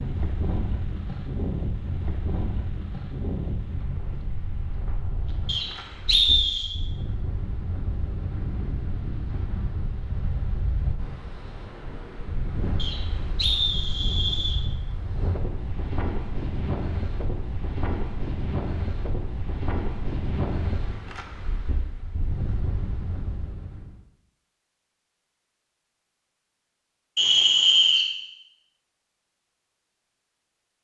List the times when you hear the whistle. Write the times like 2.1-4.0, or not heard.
5.5-6.7, 12.8-14.6, 27.1-28.1.